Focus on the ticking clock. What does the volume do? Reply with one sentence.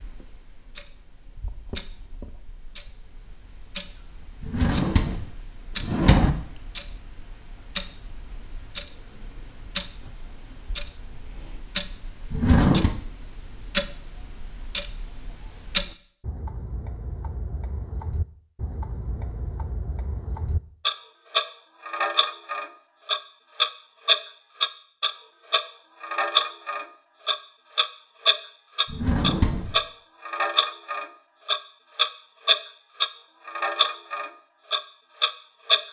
The loudness of the ticking clock goes up.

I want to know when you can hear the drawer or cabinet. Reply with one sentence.
The drawer or cabinet can be heard from 4.4 to 6.3 s, from 12.3 to 12.9 s and from 28.9 to 29.8 s.